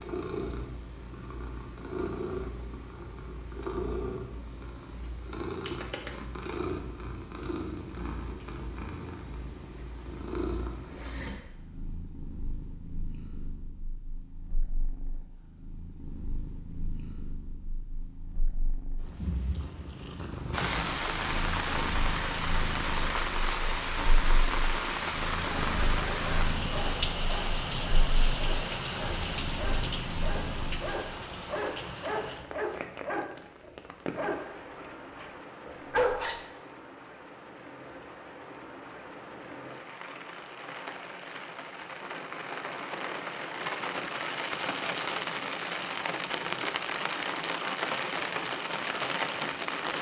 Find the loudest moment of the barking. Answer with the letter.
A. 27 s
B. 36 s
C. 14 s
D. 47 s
B.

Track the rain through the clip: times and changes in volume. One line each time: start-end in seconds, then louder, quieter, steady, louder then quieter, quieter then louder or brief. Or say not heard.
20.5-49.9 quieter then louder.